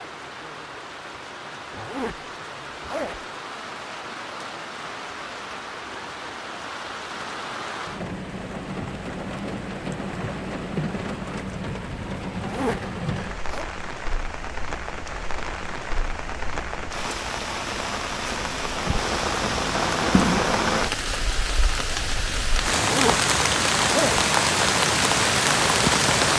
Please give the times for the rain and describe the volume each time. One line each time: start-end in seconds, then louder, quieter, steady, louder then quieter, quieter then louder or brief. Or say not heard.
0.0-26.3 louder.